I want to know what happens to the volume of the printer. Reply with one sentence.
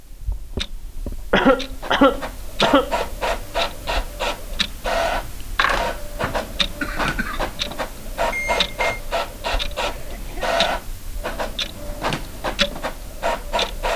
The volume of the printer stays about the same.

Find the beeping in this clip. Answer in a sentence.
You can hear the beeping from 8.3 to 8.9 s.